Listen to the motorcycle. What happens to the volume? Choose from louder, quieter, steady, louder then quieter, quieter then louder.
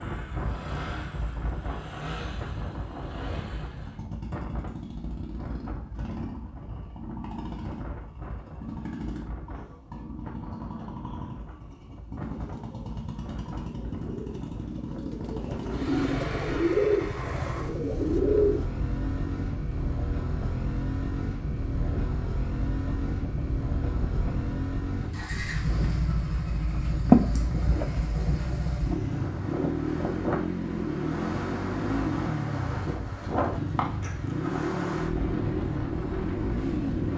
louder.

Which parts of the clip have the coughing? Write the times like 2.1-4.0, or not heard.
27.1-27.9.